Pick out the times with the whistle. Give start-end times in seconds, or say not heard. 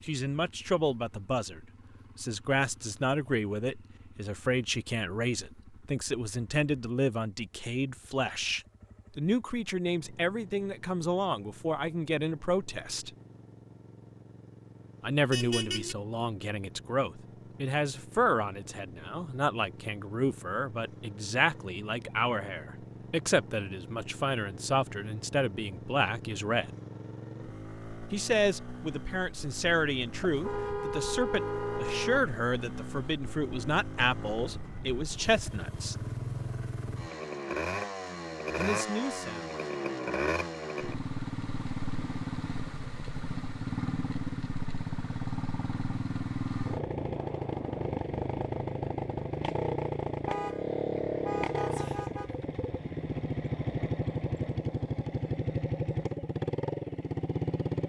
not heard.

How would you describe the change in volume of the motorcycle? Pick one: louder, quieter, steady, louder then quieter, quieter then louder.
louder.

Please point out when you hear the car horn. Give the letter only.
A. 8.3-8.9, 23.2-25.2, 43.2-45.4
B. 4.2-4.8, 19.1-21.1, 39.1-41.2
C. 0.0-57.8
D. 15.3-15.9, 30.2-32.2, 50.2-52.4
D.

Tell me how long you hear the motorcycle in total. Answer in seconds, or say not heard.
58 s.